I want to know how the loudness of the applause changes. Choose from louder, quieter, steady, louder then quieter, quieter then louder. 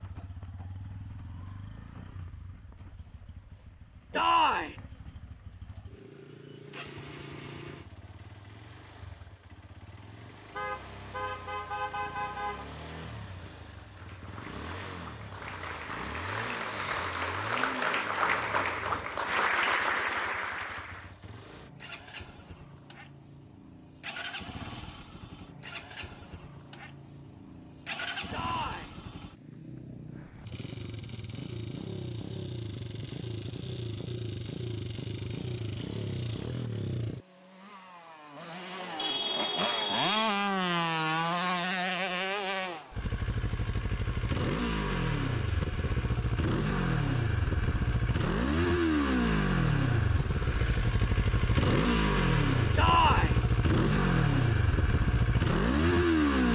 louder.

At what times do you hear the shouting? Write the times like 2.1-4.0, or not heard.
4.1-4.8, 28.3-28.9, 52.8-53.4.